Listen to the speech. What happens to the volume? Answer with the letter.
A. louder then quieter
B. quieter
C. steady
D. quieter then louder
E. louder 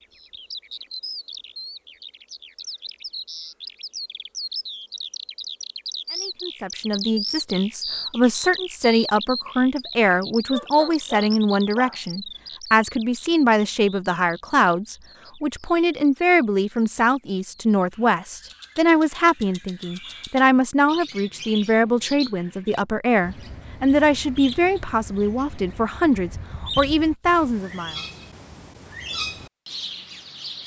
C.